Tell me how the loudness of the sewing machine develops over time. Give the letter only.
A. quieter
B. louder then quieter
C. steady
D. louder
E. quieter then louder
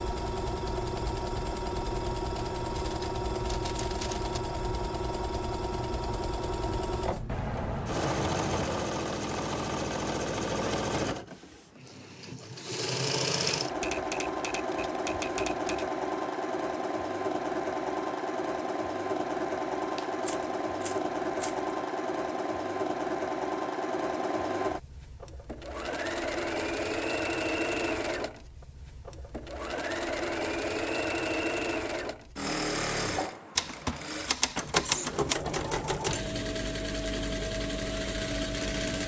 C.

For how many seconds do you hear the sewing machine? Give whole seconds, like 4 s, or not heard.
39 s.